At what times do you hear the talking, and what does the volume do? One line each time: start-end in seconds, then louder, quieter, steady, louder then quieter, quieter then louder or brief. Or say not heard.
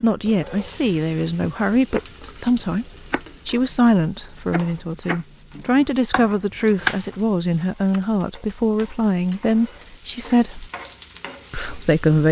0.0-10.7 steady
11.5-12.2 brief.